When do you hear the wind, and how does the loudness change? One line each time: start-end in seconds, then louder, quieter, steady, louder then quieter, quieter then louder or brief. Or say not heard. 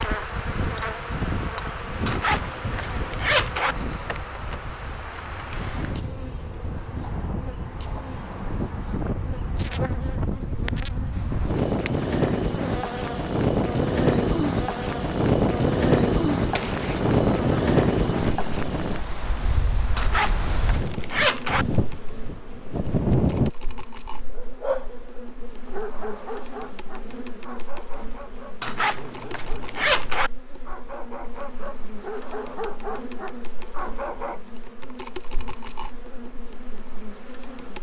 0.0-23.5 louder then quieter.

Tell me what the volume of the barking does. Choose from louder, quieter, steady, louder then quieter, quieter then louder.
quieter then louder.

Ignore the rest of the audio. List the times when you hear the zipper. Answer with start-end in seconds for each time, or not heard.
2.0-3.8, 19.9-21.6, 28.6-30.3.